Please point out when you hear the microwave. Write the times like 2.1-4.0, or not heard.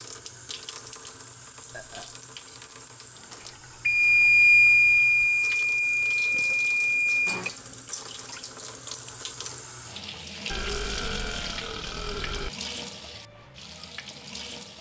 3.2-7.5.